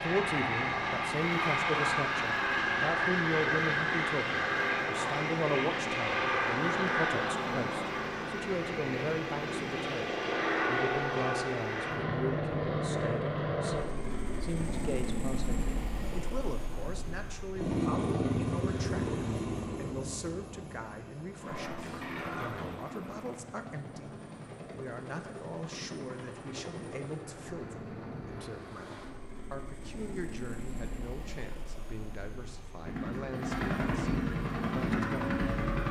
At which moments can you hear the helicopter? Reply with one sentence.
The helicopter can be heard from 0.0 to 35.8 s.